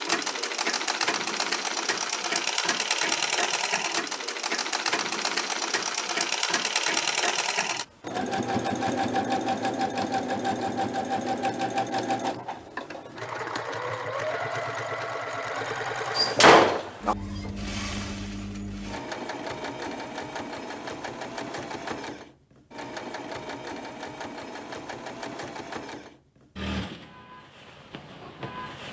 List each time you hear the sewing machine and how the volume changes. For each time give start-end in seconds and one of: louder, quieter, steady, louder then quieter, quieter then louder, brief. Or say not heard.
0.0-28.8 quieter.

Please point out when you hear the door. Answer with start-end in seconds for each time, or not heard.
16.1-17.1.